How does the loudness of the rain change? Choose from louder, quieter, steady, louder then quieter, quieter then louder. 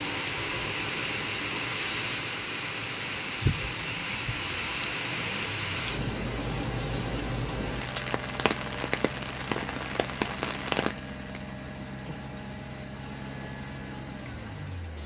quieter.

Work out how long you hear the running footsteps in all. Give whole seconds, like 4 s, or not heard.
not heard.